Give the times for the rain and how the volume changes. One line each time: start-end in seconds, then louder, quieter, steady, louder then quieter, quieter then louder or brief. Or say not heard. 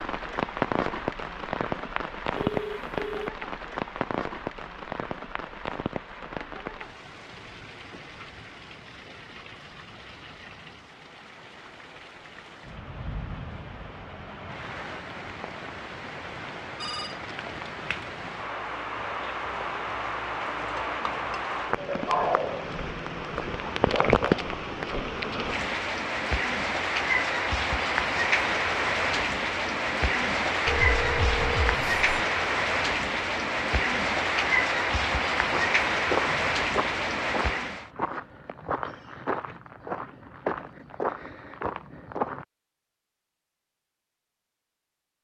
0.0-37.9 quieter then louder.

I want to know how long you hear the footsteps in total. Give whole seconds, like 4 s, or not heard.
7 s.